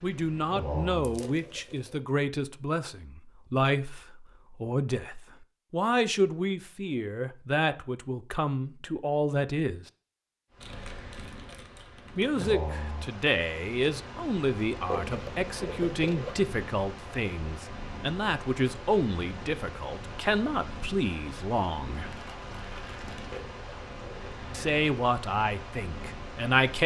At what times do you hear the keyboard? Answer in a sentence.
You can't hear the keyboard here.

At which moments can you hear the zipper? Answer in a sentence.
You can hear the zipper from 1.2 to 2.0 s, from 14.8 to 16.4 s and from 23.3 to 24.4 s.